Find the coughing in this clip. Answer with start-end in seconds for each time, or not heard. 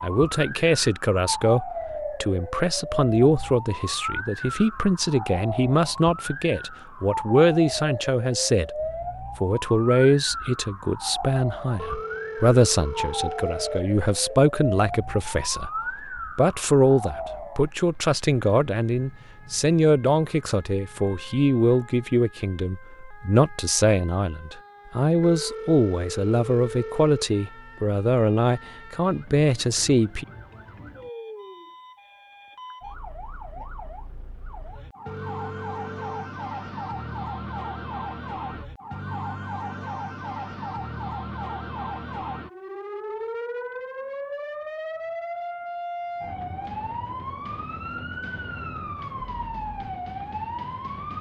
not heard.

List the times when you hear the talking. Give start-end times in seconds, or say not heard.
0.0-8.7, 9.4-30.2.